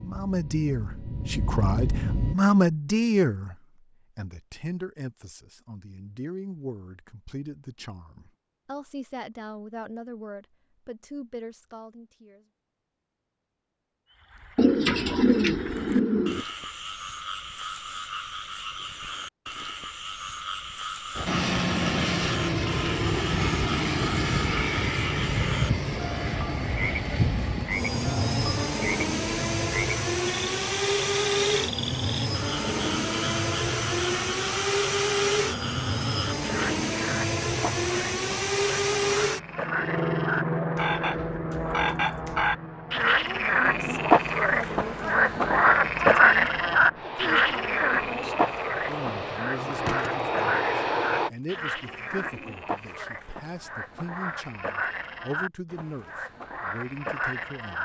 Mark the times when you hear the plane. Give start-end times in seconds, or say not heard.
0.0-2.4, 21.1-51.3.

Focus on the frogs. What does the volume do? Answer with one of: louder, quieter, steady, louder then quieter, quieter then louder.
louder then quieter.